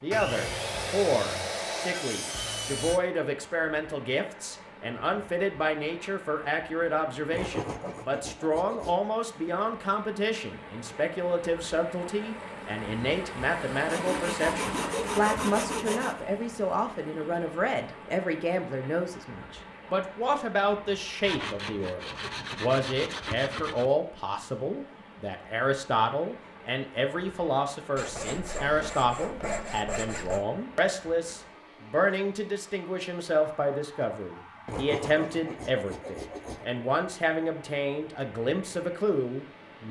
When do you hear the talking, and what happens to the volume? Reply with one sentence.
The talking can be heard from 0.0 to 39.8 s, at a steady volume.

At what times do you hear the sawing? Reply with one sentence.
The sawing can be heard from 0.1 to 3.0 s, from 7.3 to 9.0 s, from 13.8 to 16.2 s, from 21.2 to 23.9 s, from 27.9 to 30.4 s and from 34.6 to 36.6 s.